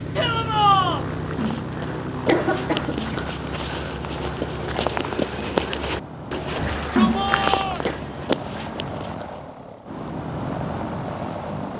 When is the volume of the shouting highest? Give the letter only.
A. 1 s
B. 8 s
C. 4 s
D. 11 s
A.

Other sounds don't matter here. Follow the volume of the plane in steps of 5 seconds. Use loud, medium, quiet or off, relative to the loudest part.
loud, medium, loud.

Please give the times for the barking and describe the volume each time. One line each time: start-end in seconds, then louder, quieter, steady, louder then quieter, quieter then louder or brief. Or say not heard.
not heard.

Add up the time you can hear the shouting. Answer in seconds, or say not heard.
2 s.